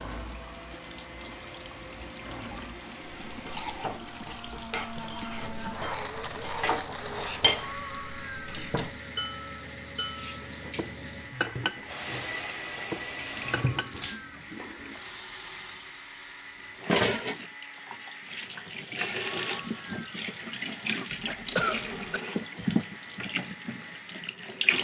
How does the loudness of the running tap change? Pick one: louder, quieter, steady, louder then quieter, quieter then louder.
louder.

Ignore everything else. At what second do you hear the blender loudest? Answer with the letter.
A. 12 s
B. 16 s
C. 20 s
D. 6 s
D.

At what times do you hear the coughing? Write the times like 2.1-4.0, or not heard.
21.1-22.2.